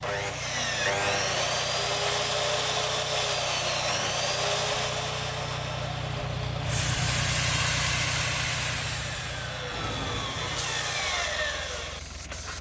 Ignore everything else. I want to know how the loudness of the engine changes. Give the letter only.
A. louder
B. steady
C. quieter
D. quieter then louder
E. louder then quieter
E.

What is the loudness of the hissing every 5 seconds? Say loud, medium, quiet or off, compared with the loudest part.
off, loud, medium.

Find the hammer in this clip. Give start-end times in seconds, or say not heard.
not heard.